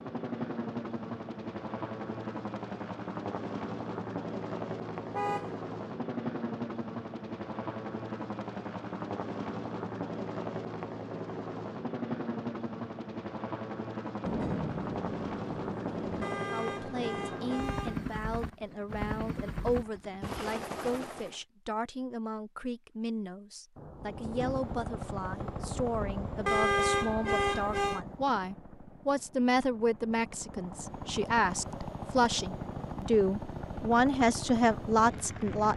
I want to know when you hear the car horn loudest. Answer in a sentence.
The loudest moment of the car horn is at 27 seconds.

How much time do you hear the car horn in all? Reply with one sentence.
You can hear the car horn for 4 seconds altogether.